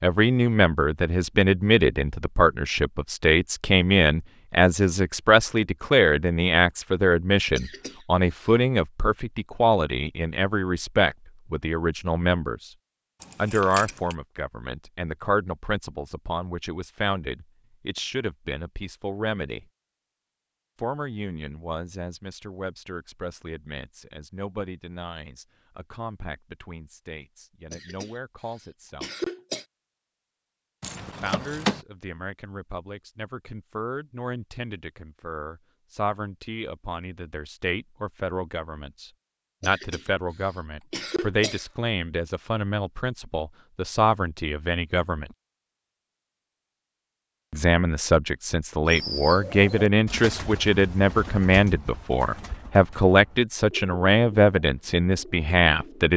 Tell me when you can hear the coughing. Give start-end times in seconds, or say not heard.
7.5-8.5, 27.7-29.6, 39.6-41.6.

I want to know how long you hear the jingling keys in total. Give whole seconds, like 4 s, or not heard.
2 s.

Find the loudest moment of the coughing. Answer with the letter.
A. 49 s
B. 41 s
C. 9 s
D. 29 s
D.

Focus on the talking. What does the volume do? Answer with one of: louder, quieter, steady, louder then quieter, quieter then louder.
quieter then louder.